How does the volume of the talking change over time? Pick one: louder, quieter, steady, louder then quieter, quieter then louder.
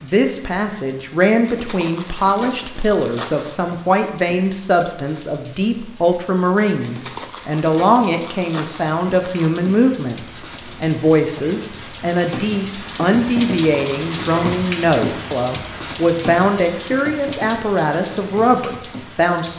steady.